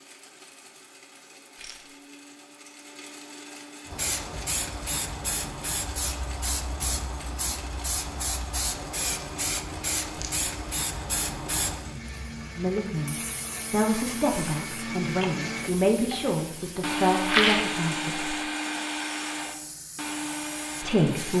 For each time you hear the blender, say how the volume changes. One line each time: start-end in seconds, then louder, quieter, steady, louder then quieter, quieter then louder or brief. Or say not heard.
0.0-21.3 louder.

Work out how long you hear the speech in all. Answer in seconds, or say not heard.
6 s.